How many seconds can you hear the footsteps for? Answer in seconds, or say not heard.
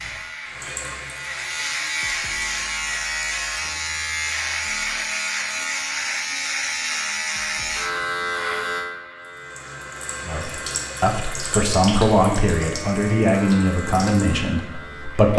not heard.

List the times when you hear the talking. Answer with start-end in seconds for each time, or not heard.
10.2-15.3.